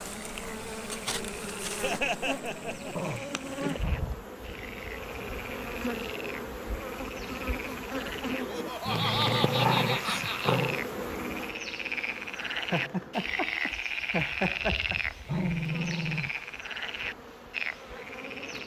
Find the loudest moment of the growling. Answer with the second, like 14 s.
10 s.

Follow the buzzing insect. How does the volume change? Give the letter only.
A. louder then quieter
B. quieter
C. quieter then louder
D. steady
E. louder
B.